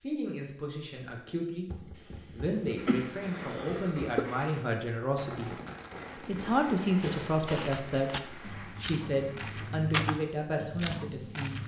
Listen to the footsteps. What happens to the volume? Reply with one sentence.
The loudness of the footsteps goes up, then down.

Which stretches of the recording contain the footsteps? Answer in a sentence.
The footsteps can be heard from 7.0 to 11.6 s.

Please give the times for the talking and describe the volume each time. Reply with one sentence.
The talking can be heard from 0.0 to 5.5 s, getting louder; and from 6.2 to 11.6 s, getting quieter.